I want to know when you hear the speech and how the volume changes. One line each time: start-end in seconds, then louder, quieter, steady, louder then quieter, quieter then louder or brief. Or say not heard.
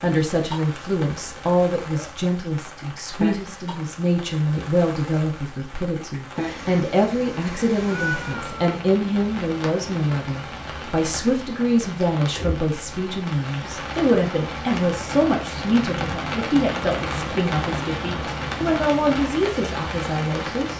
0.0-20.7 steady.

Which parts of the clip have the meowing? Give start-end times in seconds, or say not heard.
7.8-8.8.